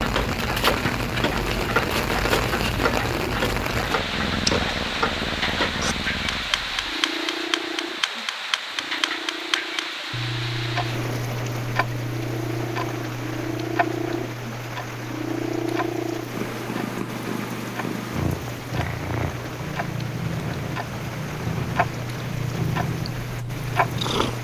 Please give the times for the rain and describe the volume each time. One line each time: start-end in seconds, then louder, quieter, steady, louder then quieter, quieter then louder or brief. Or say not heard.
0.0-24.3 quieter.